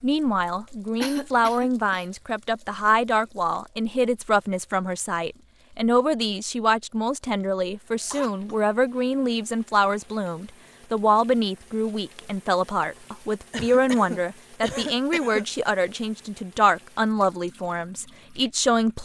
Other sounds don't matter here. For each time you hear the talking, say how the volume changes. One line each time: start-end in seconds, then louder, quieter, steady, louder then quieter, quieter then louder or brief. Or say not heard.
0.0-19.0 steady.